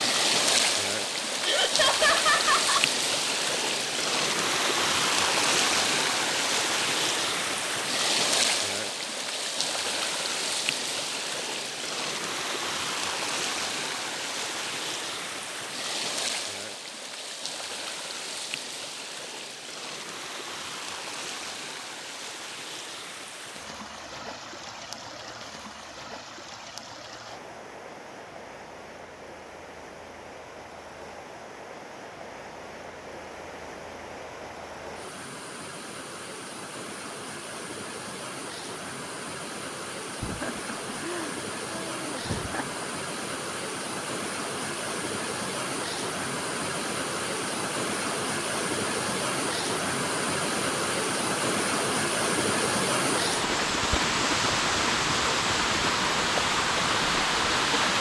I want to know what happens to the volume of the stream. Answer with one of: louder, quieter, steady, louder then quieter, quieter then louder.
quieter then louder.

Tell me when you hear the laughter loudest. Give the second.
2 s.